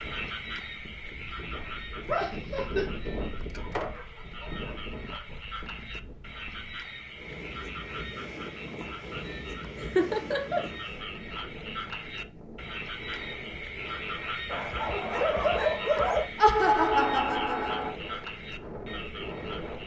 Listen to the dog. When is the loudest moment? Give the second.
16 s.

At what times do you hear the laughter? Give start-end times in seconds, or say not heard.
2.0-2.9, 9.8-10.7, 16.4-17.9.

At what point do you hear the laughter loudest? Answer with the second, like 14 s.
17 s.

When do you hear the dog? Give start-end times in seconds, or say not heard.
3.5-5.5, 14.4-16.2.